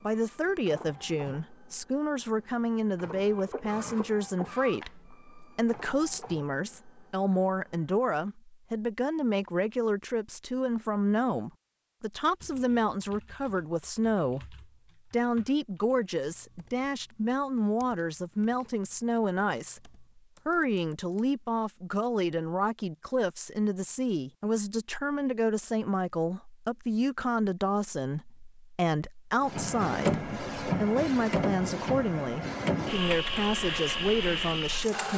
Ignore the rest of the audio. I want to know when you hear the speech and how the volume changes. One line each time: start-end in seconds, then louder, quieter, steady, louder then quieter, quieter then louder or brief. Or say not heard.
0.0-35.1 steady.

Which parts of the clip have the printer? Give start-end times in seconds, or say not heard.
0.0-7.9, 29.4-35.1.